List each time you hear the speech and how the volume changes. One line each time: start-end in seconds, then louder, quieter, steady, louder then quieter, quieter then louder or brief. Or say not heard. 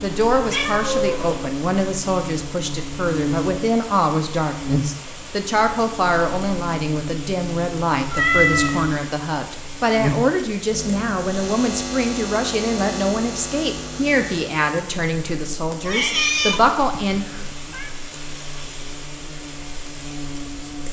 0.0-17.2 steady.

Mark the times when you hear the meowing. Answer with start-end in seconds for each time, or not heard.
0.5-1.4, 8.1-8.8, 15.8-17.9.